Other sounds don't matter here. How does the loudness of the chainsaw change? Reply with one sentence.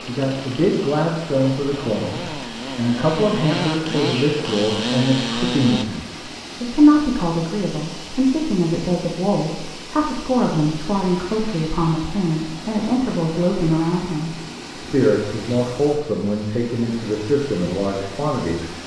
The loudness of the chainsaw goes up.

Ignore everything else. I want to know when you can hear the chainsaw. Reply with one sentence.
You can hear the chainsaw from 0.0 to 5.8 s.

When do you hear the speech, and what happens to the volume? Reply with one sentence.
The speech can be heard from 0.1 to 18.8 s, at a steady volume.